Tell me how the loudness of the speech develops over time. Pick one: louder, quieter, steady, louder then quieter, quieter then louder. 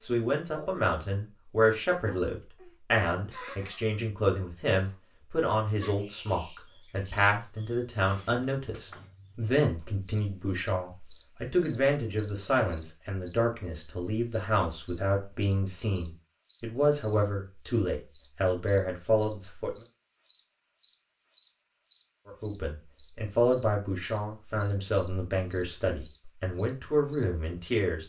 steady.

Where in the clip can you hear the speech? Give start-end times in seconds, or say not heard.
0.1-19.7, 22.2-28.0.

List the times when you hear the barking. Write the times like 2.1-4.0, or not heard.
not heard.